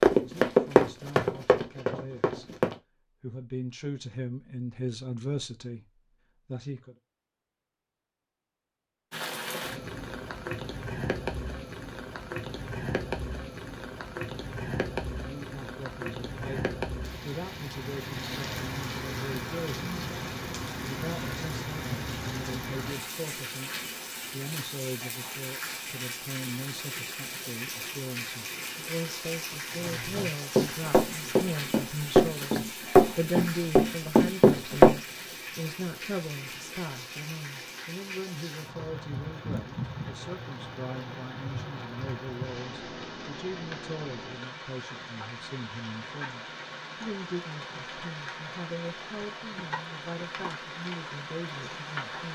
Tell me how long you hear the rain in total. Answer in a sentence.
You can hear the rain for 43 seconds altogether.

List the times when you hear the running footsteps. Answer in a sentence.
The running footsteps can be heard from 0.0 to 2.8 s and from 29.8 to 35.0 s.